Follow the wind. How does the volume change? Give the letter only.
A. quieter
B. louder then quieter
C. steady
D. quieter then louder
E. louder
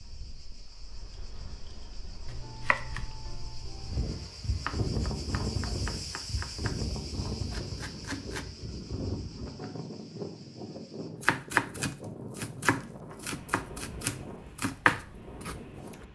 B.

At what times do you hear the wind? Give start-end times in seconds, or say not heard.
0.0-16.1.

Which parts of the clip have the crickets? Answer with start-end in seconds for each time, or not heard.
0.0-11.1.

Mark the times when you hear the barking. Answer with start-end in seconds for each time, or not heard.
not heard.